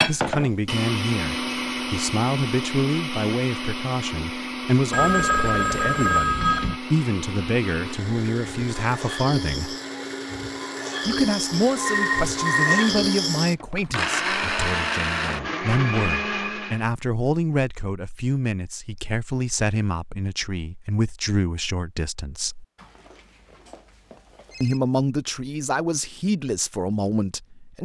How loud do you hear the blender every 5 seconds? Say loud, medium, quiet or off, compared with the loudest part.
loud, medium, loud, loud, off, off.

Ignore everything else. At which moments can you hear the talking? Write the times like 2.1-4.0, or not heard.
0.1-9.8, 11.1-22.6, 24.6-27.8.